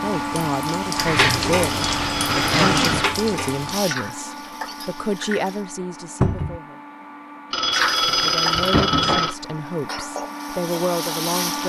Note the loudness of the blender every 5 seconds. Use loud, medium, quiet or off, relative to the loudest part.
loud, medium, loud.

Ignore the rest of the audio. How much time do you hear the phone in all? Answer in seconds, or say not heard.
3 s.